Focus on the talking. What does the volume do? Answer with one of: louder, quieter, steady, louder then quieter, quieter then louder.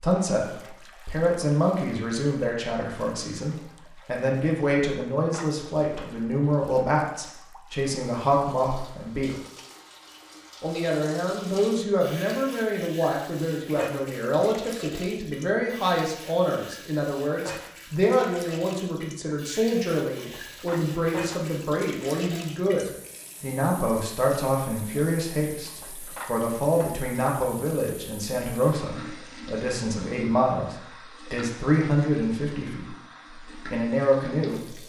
steady.